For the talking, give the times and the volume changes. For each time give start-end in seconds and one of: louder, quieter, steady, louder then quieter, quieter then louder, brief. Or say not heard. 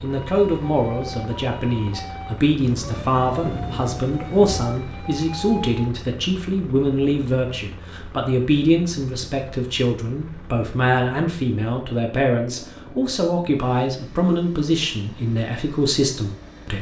0.0-16.7 steady.